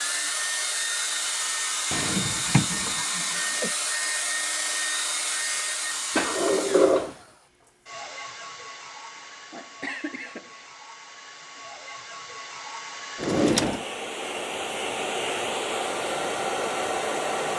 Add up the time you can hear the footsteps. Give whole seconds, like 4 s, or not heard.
not heard.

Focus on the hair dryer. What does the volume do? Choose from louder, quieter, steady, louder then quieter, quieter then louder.
quieter then louder.